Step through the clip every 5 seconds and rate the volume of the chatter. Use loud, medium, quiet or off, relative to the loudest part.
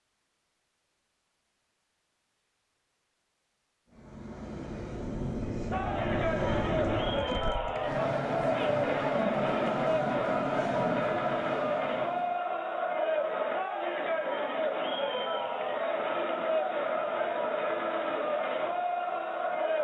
off, loud, loud, loud.